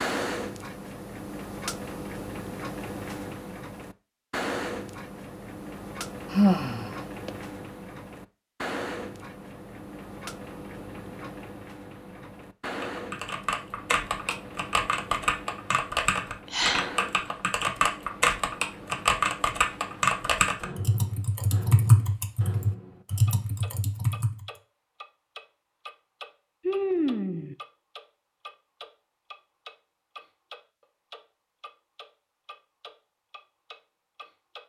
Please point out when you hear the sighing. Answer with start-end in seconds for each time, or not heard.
6.3-7.3, 16.5-16.9, 26.6-27.6.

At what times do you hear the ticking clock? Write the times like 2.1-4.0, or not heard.
0.0-34.6.